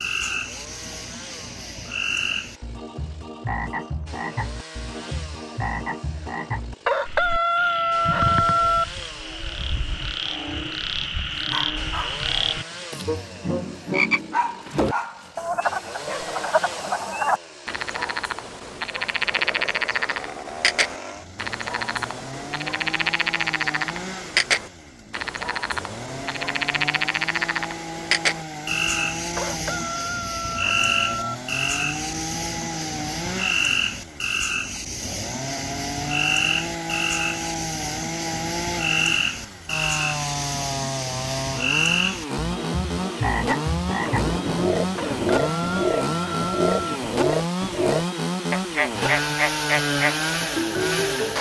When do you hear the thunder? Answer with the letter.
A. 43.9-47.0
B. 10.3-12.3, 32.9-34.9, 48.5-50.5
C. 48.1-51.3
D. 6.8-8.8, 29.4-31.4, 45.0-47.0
A.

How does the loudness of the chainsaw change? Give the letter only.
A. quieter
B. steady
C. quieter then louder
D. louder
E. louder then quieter
D.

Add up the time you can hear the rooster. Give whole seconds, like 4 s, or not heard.
6 s.